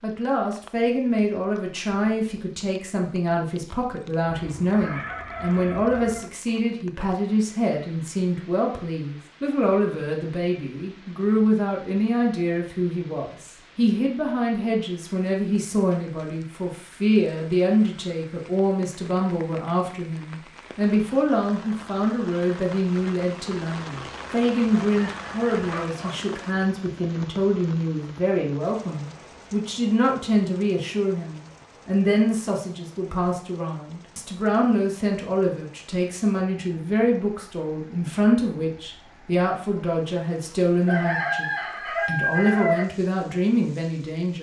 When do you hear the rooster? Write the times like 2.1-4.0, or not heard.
4.3-6.2, 24.6-26.1, 40.9-42.9.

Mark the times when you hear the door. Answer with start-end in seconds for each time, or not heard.
not heard.